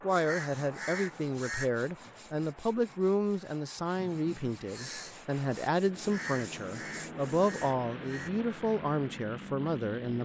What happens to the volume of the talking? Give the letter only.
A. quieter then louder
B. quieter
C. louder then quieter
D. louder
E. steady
E.